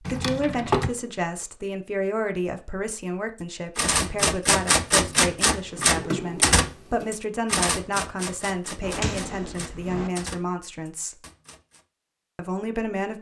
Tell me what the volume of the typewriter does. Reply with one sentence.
The volume of the typewriter goes down.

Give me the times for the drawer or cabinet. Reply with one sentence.
The drawer or cabinet can be heard from 0.1 to 0.9 s, from 5.7 to 7.1 s and from 8.8 to 10.1 s.